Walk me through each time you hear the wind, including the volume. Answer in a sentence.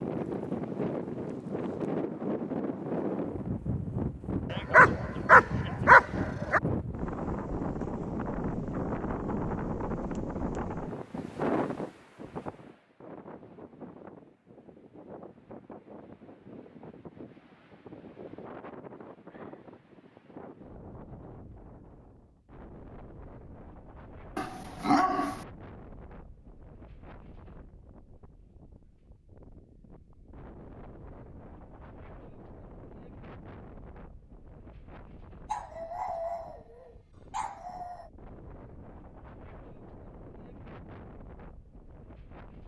You can hear the wind from 0.0 to 42.6 s, getting quieter.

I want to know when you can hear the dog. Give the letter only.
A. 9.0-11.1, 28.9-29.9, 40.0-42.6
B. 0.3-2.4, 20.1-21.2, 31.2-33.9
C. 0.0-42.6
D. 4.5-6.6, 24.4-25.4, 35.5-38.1
D.